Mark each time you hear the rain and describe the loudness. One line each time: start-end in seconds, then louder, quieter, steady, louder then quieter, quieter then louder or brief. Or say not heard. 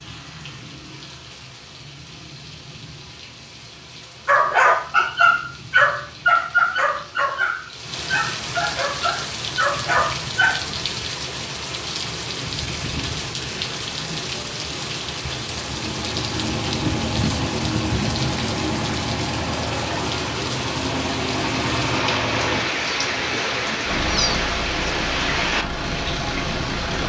0.0-27.0 louder.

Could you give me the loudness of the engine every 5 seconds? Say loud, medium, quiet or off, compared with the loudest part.
off, off, off, loud, loud, loud.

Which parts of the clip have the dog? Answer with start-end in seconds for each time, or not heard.
4.2-10.6.